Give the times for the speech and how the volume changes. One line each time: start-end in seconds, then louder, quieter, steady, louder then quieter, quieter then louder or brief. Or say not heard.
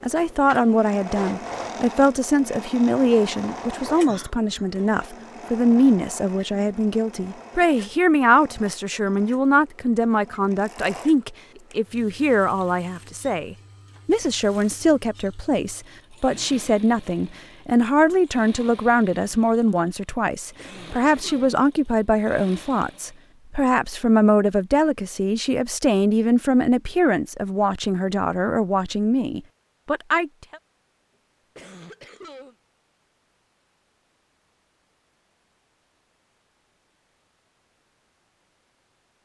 0.0-30.6 steady.